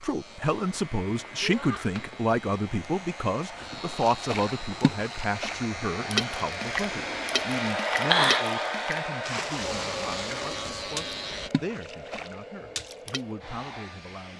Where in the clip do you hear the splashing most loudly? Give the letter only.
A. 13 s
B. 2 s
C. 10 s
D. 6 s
D.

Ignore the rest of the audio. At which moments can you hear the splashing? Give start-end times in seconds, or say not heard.
4.0-13.2.